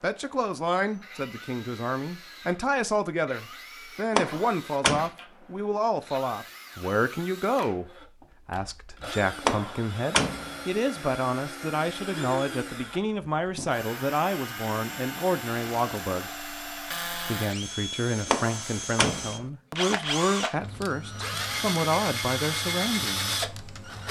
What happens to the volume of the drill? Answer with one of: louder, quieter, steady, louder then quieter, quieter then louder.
louder.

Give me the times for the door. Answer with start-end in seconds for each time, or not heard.
4.1-5.0, 9.4-10.6, 18.2-19.4.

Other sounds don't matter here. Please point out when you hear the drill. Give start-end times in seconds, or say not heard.
0.0-24.0.